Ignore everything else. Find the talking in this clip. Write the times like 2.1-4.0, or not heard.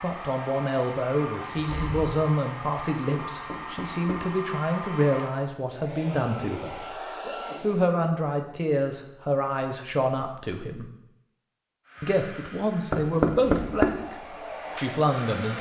0.0-6.8, 7.6-10.9, 12.0-15.5.